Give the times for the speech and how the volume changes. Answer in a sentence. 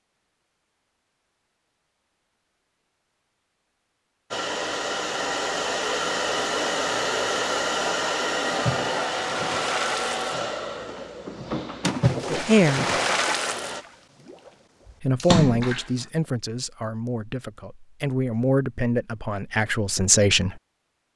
You can hear the speech briefly from 12.3 to 12.8 s; and from 15.0 to 20.6 s, getting quieter then louder.